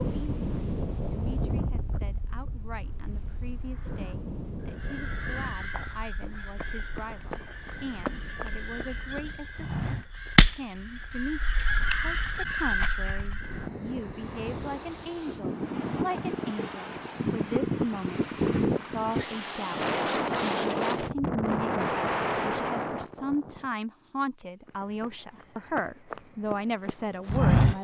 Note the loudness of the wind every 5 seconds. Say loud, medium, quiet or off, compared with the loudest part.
medium, quiet, quiet, loud, loud, off.